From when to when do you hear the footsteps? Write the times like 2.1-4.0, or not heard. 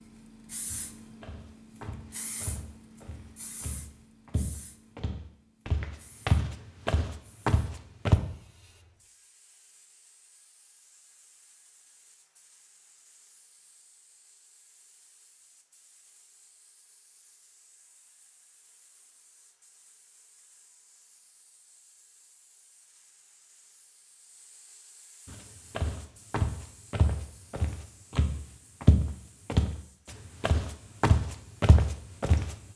0.7-8.2, 25.2-32.5.